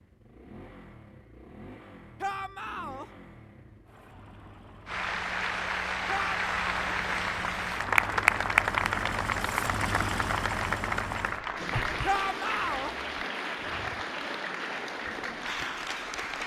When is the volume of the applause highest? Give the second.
8 s.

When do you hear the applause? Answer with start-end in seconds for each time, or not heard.
4.8-16.4.